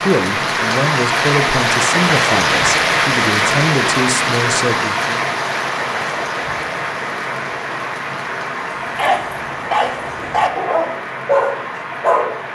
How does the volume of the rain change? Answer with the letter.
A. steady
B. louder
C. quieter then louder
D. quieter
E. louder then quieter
D.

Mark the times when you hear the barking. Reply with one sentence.
The barking can be heard from 8.8 to 12.4 s.